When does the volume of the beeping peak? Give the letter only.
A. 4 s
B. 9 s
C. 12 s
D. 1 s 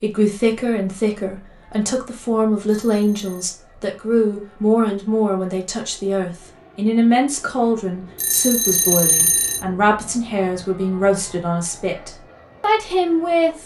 B.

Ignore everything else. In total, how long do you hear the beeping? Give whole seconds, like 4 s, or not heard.
2 s.